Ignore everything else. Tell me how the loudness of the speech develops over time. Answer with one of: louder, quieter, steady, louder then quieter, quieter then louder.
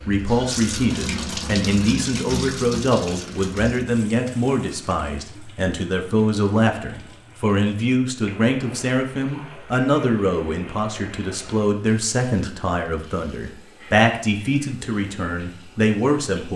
steady.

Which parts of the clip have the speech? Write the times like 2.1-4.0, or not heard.
0.1-16.5.